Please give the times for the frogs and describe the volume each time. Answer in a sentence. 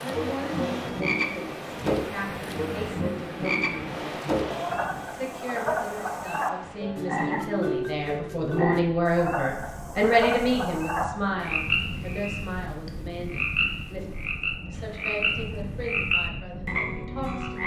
You can hear the frogs from 0.0 to 17.6 s, at a steady volume.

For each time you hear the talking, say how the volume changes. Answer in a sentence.
The talking can be heard from 0.0 to 14.1 s, getting louder then quieter; and briefly from 14.7 to 17.6 s.